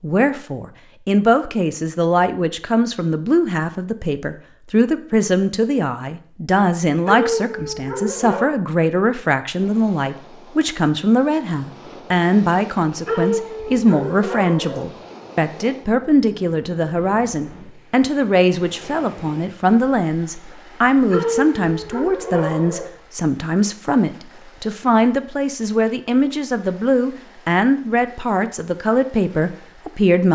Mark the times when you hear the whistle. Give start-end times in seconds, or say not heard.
not heard.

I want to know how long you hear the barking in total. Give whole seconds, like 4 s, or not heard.
5 s.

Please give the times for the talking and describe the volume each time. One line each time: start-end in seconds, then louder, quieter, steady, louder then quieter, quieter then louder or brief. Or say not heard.
0.0-30.3 steady.